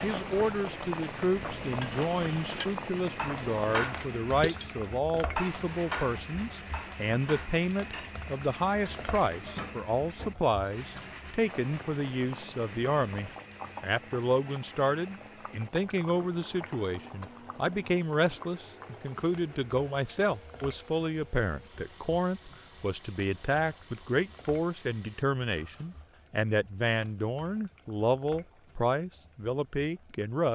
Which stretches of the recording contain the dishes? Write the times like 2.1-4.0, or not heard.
1.6-11.3.